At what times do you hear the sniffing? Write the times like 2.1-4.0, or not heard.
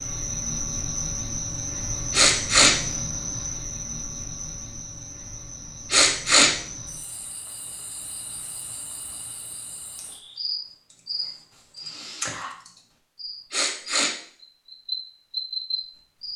2.1-2.8, 5.9-6.5, 13.5-14.2.